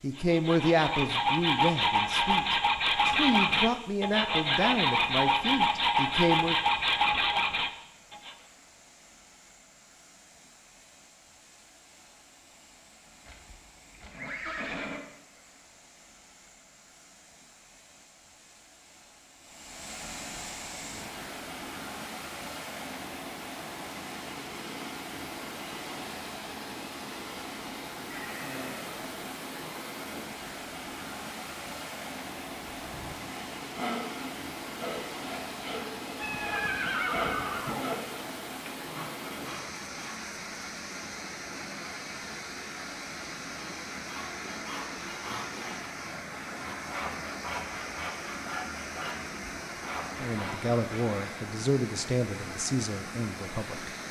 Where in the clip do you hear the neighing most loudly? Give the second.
37 s.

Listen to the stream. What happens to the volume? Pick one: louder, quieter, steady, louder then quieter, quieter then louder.
louder.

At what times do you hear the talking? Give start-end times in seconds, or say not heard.
0.0-6.5, 50.2-53.9.